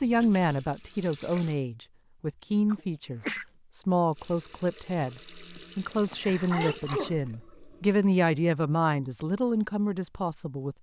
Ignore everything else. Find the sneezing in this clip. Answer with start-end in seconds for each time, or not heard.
2.7-3.5, 5.5-7.2.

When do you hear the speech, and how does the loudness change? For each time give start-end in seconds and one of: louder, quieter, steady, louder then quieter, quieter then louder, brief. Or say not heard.
0.0-10.7 steady.